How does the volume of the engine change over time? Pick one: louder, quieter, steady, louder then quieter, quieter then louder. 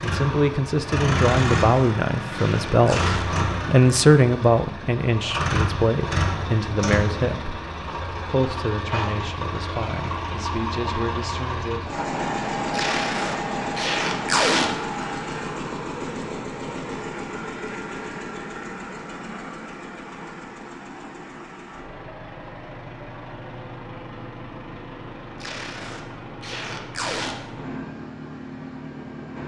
quieter.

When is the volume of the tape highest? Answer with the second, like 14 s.
14 s.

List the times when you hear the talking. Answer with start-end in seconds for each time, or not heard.
0.0-11.9.